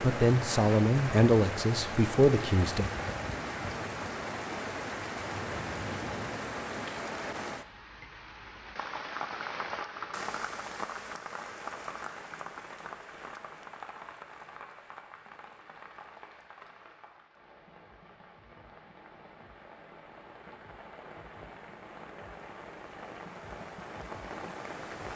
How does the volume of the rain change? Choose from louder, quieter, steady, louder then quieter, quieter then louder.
quieter then louder.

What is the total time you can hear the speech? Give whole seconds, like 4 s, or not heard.
3 s.